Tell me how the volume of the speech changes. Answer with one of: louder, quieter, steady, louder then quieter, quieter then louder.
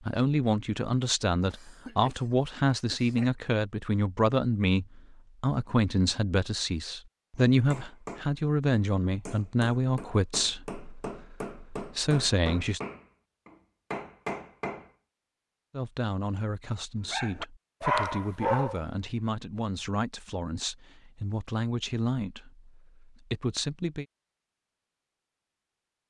quieter.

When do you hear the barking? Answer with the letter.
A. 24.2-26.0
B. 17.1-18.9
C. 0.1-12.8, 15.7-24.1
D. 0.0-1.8
B.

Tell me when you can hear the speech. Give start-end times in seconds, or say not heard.
0.1-12.8, 15.7-24.1.